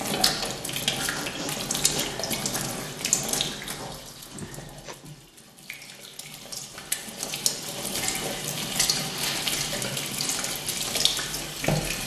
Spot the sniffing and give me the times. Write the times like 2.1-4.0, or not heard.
1.1-2.1, 4.3-5.0, 9.1-9.5.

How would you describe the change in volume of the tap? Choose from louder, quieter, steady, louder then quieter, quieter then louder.
quieter then louder.